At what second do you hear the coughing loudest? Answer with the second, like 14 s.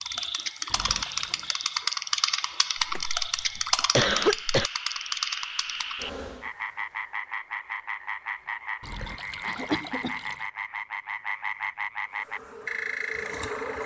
4 s.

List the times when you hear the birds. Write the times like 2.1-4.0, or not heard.
not heard.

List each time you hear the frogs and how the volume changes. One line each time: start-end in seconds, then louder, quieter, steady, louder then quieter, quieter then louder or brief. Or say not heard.
0.0-13.8 louder.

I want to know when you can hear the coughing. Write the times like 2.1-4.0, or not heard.
2.9-4.7, 9.4-10.2.